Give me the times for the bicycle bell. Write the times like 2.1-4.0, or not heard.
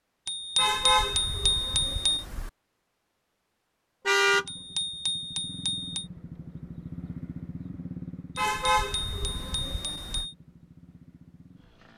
0.2-2.2, 4.5-6.0, 8.3-10.3.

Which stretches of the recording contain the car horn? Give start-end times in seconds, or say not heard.
0.6-2.5, 4.0-4.5, 8.3-10.2.